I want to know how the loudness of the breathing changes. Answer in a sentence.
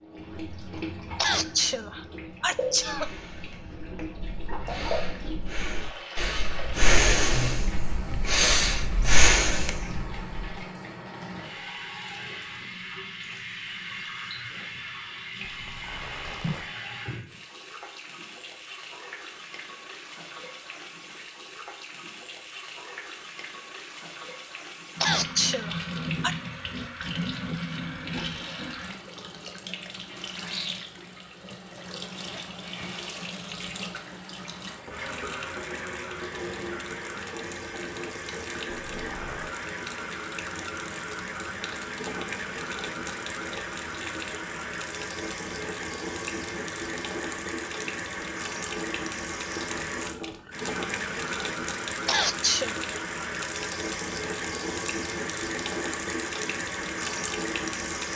The loudness of the breathing goes up.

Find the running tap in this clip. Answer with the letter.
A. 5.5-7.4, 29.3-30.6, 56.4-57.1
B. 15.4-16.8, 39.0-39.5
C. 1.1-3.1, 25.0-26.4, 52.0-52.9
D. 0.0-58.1
D.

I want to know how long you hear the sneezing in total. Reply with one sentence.
You can hear the sneezing for 4 seconds altogether.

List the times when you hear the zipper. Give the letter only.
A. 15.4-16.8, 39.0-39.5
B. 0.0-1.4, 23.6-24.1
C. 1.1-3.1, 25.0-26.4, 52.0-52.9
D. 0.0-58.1
A.